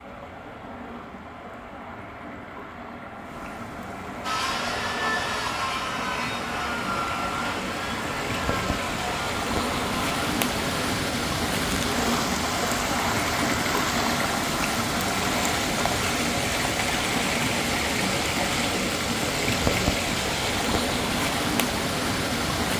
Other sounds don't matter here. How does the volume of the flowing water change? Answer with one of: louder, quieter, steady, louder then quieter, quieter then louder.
louder.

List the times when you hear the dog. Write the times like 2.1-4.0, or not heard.
not heard.